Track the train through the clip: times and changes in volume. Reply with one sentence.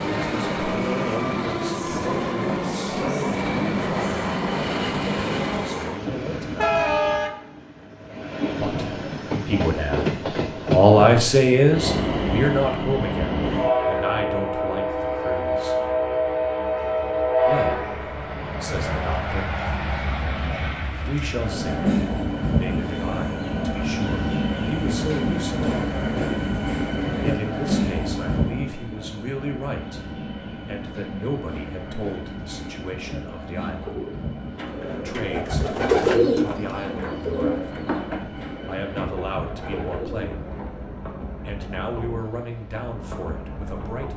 The train can be heard from 0.0 to 44.1 s, getting quieter.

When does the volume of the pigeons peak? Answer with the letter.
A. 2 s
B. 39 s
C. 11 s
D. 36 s
D.